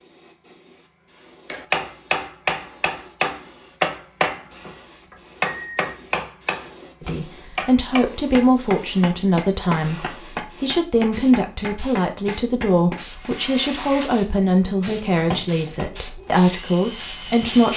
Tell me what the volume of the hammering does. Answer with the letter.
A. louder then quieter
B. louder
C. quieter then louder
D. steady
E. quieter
E.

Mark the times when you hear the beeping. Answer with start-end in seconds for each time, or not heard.
4.5-6.0.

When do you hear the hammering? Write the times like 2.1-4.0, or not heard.
1.5-13.3.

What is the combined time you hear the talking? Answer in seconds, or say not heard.
11 s.